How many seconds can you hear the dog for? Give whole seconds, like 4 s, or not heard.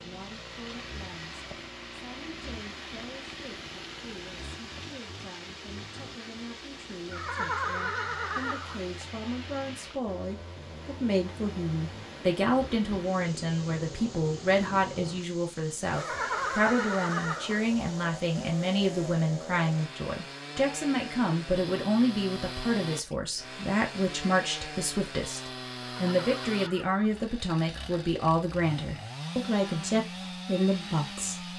not heard.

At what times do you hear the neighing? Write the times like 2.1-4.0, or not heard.
7.1-8.8, 15.9-17.6, 25.9-27.2.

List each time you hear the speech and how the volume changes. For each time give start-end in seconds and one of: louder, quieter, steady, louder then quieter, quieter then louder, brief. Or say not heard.
0.0-31.5 louder.